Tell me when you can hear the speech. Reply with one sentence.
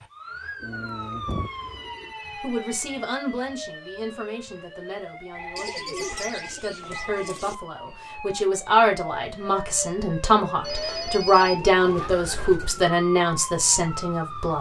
The speech can be heard from 2.4 to 14.5 s.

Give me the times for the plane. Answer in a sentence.
You can't hear the plane here.